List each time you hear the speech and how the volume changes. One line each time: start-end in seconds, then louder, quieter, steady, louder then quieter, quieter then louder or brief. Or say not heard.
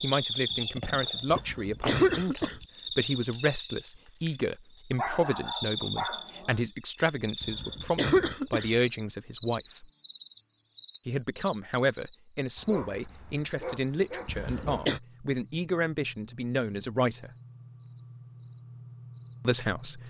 0.0-9.8 steady
11.1-17.3 steady
19.4-20.0 brief.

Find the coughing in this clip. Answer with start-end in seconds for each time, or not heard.
1.3-2.6, 7.4-8.7, 14.2-15.0.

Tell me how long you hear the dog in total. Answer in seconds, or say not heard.
4 s.